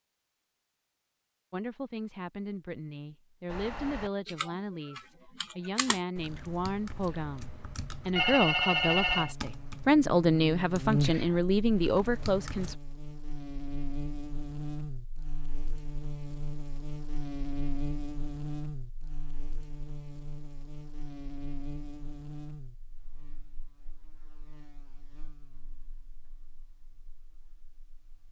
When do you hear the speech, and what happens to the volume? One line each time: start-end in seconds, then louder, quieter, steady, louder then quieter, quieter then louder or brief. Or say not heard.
1.5-12.8 louder.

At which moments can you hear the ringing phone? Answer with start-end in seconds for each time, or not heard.
8.2-9.3.